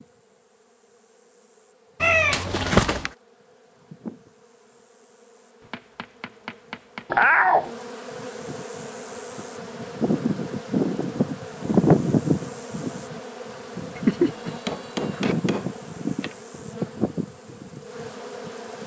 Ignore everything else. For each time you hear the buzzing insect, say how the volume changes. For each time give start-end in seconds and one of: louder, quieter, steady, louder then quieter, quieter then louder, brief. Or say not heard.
0.0-18.8 louder then quieter.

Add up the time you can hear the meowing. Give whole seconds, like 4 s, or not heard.
3 s.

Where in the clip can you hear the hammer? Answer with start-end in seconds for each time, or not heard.
5.6-7.3, 14.6-16.4.